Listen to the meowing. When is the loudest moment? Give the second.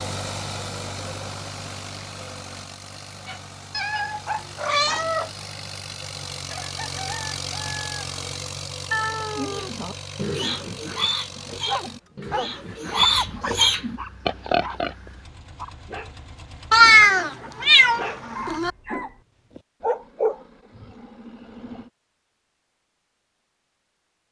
17 s.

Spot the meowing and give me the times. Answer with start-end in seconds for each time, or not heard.
3.7-5.3, 8.9-9.9, 16.7-18.7.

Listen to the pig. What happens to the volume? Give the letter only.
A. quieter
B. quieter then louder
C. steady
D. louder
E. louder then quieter
B.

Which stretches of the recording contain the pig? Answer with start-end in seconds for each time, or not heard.
9.6-14.9.